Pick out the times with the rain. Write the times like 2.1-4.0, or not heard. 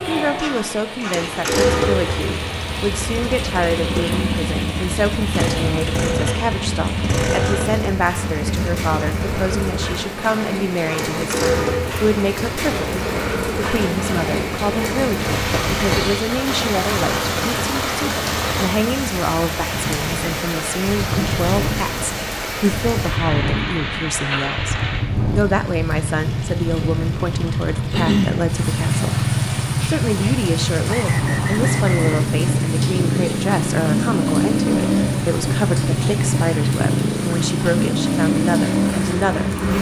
0.0-39.7.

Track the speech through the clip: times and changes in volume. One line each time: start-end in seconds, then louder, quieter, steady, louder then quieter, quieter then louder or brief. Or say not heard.
0.0-39.5 steady.